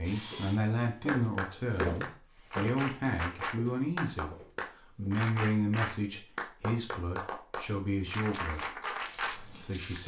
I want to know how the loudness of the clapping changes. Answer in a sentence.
The loudness of the clapping stays about the same.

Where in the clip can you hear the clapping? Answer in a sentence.
You can hear the clapping from 1.1 to 9.4 s.